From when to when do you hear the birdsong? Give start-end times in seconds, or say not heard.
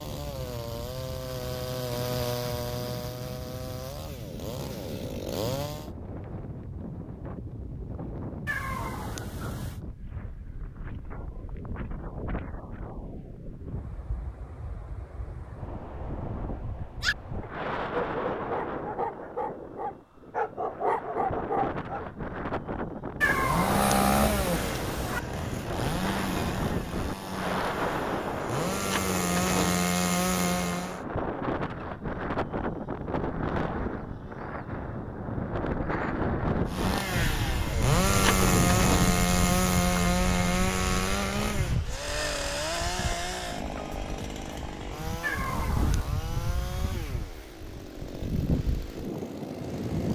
not heard.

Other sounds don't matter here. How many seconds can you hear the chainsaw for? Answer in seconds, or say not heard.
27 s.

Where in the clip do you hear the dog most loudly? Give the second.
21 s.